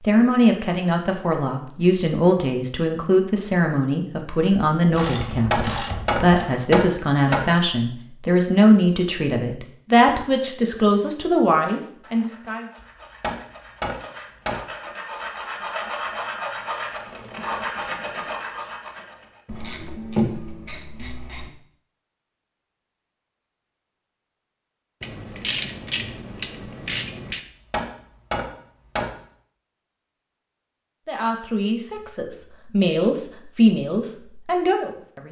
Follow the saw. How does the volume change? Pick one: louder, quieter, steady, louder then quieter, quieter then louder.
louder.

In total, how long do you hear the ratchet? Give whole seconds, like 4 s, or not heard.
6 s.